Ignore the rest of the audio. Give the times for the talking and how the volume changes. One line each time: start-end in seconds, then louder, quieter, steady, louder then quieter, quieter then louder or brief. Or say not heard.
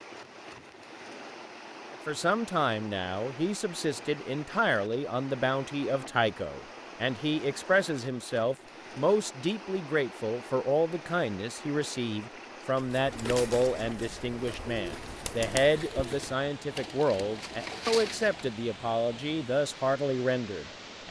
1.9-21.0 steady.